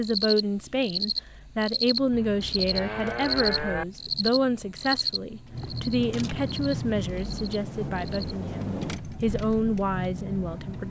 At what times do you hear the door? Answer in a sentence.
You can't hear the door here.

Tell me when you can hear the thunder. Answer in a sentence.
You can hear the thunder from 6.0 to 9.0 s.